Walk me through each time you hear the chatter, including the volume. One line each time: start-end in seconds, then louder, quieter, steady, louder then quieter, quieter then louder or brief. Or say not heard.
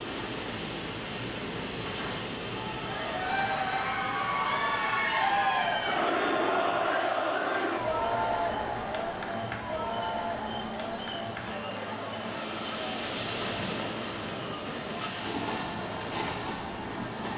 2.4-17.3 quieter.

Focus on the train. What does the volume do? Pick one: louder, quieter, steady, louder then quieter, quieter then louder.
quieter then louder.